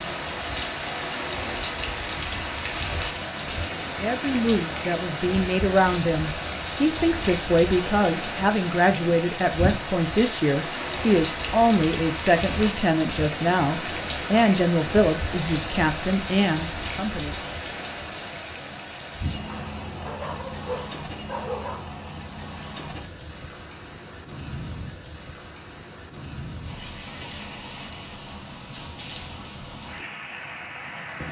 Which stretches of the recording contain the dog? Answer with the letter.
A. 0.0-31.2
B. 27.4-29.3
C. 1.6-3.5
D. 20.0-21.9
D.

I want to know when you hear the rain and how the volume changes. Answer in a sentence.
The rain can be heard from 0.0 to 31.2 s, getting quieter.